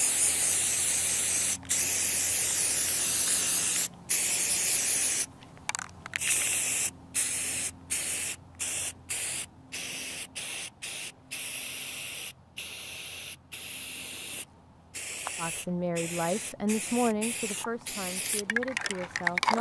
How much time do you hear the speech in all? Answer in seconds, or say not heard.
4 s.